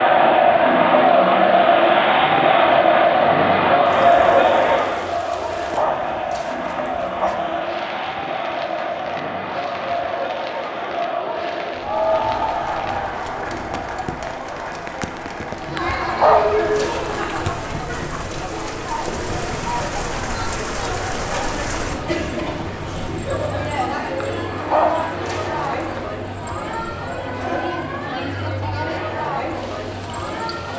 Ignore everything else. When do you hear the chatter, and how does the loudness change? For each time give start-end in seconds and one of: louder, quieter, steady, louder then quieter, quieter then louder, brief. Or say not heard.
0.0-30.7 quieter.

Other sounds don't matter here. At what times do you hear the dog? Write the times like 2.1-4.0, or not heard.
5.6-7.3, 16.1-17.4, 24.6-26.1.